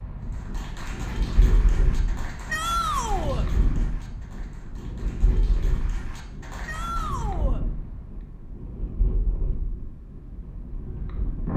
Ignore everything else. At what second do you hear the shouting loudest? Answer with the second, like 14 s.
3 s.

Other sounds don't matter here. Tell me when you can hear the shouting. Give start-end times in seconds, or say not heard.
2.5-3.5, 6.7-7.6.